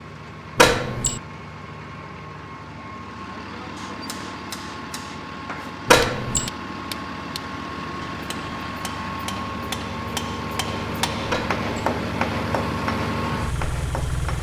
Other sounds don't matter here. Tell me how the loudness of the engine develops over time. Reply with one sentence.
The volume of the engine goes up.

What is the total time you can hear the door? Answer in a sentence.
The door can be heard for 2 seconds in total.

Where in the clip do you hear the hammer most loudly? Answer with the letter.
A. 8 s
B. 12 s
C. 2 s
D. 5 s
B.